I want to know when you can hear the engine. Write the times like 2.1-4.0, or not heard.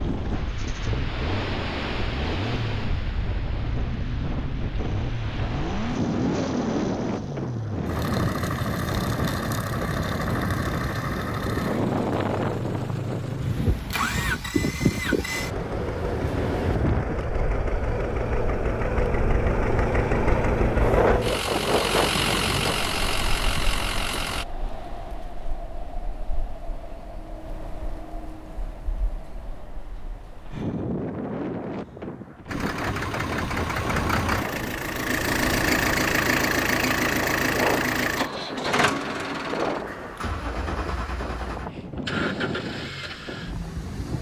0.1-24.4, 32.5-44.1.